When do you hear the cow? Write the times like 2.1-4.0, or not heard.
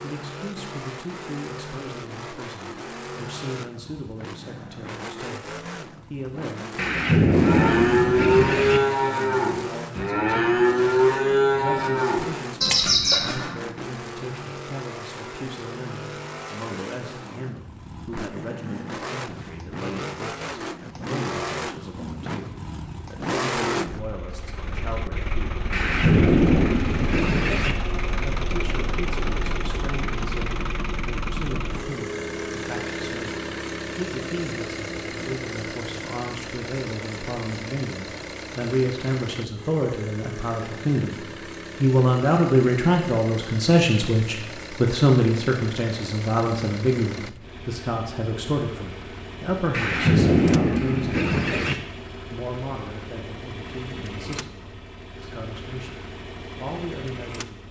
7.3-13.6.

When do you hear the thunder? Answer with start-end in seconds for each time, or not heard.
6.8-8.8, 25.7-27.8, 49.7-51.8.